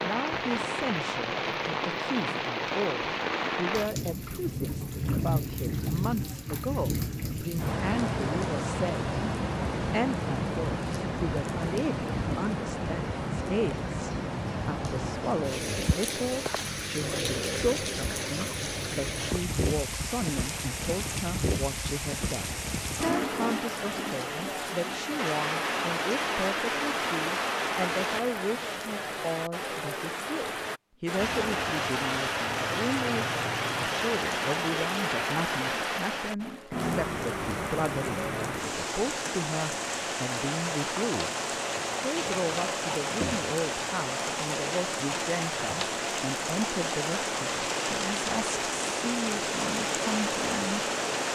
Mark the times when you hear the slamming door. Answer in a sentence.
You can't hear the slamming door here.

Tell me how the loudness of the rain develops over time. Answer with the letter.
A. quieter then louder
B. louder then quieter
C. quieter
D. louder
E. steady
E.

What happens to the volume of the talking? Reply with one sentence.
The loudness of the talking stays about the same.